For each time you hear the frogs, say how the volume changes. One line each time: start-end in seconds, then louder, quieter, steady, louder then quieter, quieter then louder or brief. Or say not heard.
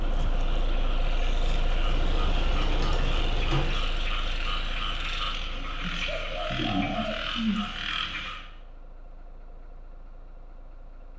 0.0-8.4 louder.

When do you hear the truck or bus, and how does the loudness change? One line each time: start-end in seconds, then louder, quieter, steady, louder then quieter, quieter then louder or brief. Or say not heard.
0.0-11.1 quieter.